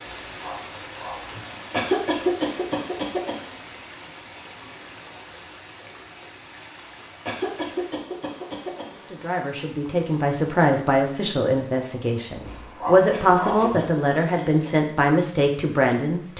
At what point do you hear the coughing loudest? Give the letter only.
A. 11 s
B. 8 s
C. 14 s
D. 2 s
D.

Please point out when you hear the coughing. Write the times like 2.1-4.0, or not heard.
1.7-3.4, 7.2-8.8, 13.1-14.7.